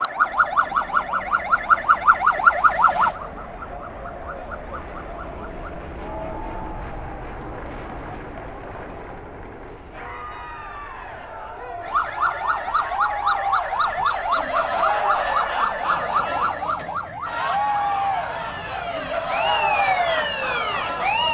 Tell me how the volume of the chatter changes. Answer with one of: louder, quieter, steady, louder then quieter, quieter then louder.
louder.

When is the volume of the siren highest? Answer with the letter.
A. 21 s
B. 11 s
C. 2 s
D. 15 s
C.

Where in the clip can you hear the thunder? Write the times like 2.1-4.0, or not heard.
not heard.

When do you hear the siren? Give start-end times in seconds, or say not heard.
0.0-5.8, 11.8-21.2.